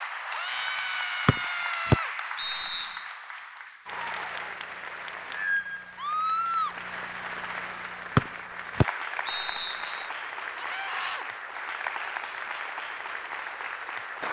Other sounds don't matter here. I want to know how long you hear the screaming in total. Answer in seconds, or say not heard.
3 s.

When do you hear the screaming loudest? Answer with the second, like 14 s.
6 s.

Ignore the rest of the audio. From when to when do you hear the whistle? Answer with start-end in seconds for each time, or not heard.
1.2-3.0, 8.2-10.1.